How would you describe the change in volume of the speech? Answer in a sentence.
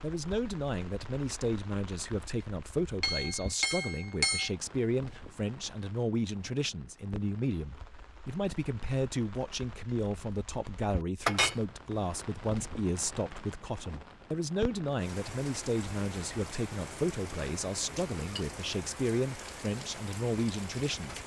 The volume of the speech stays about the same.